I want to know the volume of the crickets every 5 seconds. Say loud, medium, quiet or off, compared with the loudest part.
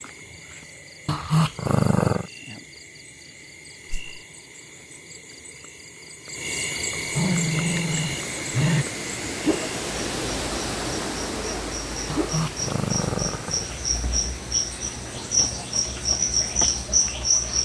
quiet, medium, medium, loud.